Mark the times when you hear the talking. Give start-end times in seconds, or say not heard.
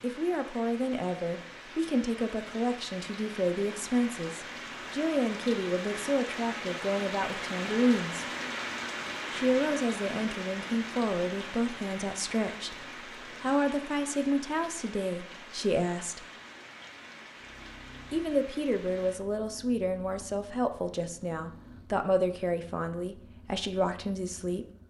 0.0-8.2, 9.3-16.2, 18.1-24.6.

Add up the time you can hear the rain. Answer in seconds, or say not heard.
19 s.